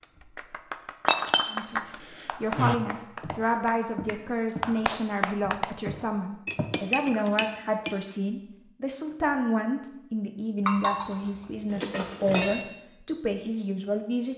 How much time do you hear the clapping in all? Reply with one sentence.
The clapping can be heard for 6 seconds in total.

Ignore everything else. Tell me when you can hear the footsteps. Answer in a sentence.
The footsteps can be heard from 3.2 to 4.8 s and from 5.4 to 6.7 s.